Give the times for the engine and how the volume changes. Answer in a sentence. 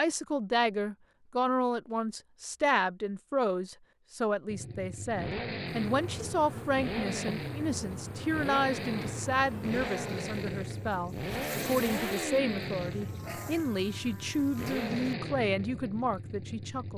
You can hear the engine from 4.5 to 16.9 s, at a steady volume.